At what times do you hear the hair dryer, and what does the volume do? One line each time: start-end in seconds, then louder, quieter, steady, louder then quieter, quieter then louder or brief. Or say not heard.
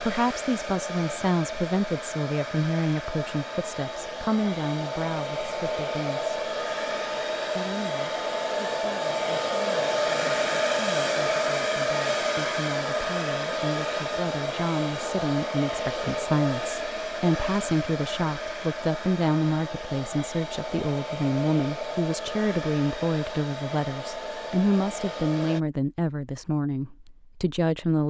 0.0-25.6 louder then quieter.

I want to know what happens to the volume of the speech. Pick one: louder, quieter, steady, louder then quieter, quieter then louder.
quieter then louder.